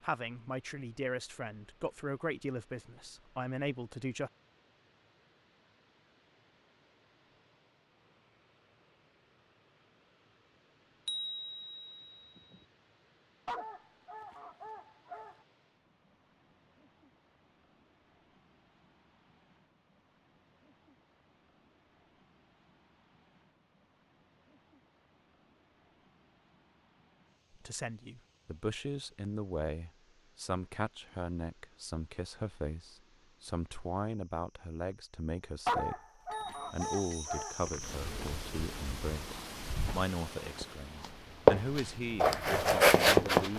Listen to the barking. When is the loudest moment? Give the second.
36 s.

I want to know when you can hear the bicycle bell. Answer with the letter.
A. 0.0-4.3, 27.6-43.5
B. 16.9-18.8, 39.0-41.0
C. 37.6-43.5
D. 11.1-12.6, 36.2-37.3
D.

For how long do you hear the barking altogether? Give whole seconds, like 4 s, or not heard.
4 s.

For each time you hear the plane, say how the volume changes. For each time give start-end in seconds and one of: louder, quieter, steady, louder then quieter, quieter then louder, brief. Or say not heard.
not heard.